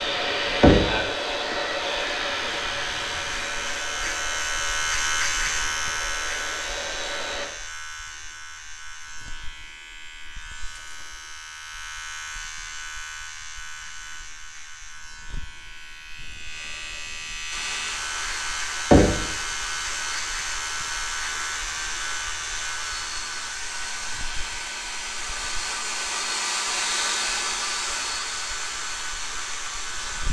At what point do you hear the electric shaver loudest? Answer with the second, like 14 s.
5 s.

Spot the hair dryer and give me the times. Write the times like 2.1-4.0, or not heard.
0.0-7.5, 17.5-30.2.